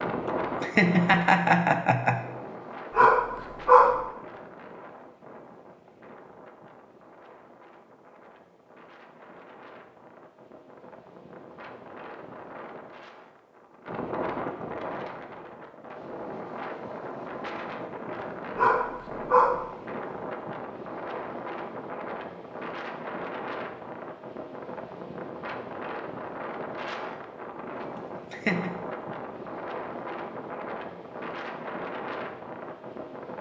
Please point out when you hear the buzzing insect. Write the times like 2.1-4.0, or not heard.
not heard.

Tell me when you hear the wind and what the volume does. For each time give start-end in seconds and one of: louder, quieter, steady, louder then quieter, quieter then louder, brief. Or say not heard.
0.0-33.3 quieter then louder.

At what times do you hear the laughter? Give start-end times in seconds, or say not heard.
0.6-2.2, 28.3-28.8.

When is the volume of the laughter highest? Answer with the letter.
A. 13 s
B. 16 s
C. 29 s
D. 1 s
D.